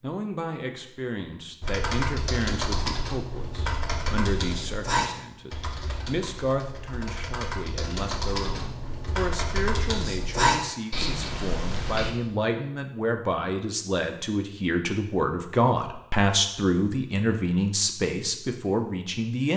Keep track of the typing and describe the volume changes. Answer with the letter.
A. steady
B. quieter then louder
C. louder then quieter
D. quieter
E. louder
B.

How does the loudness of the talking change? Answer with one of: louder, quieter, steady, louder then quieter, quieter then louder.
louder.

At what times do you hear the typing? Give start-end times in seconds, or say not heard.
1.6-12.1.